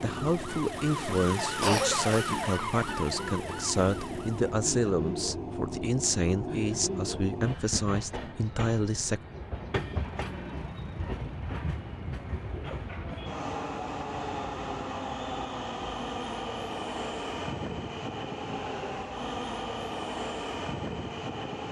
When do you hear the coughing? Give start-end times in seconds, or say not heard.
1.6-2.3.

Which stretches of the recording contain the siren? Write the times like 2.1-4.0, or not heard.
0.0-4.6.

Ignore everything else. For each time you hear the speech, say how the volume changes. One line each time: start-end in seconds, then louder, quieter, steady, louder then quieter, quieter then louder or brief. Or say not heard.
0.0-9.2 steady.